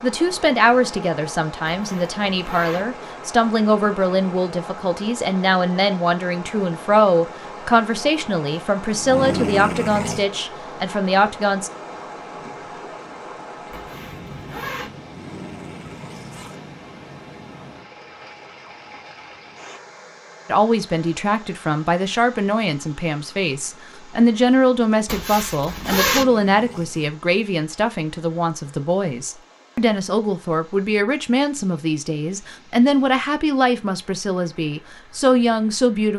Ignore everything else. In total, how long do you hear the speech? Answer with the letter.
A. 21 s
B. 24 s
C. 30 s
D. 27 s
D.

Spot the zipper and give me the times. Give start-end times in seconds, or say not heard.
1.7-2.9, 13.7-14.9, 25.1-26.2.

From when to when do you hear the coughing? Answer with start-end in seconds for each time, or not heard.
not heard.